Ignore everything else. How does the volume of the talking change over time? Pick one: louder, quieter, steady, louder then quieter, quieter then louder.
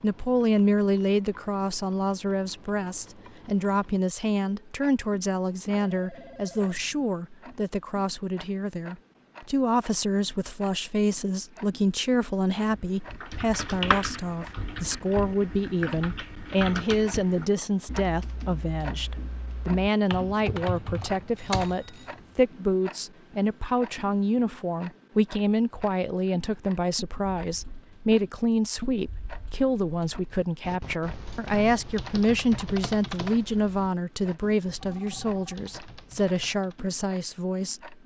steady.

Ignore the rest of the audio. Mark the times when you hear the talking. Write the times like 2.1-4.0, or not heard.
0.0-38.0.